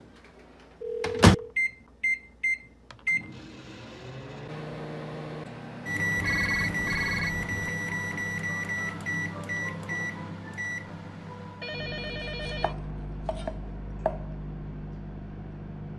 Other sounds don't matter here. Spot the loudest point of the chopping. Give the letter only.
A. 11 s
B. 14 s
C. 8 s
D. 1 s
B.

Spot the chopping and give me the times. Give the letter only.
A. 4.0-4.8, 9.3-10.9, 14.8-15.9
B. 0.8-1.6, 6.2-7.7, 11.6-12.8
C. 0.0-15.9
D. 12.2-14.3
D.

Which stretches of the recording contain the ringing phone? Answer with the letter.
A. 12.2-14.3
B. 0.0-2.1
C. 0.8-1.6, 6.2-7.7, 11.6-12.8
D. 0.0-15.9
C.